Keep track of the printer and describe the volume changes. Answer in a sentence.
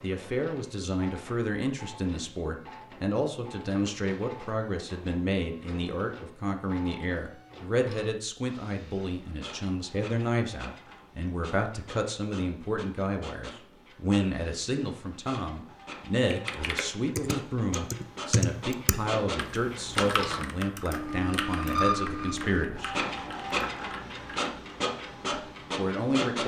The loudness of the printer goes up.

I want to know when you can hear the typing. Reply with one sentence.
You can hear the typing from 16.1 to 24.6 s.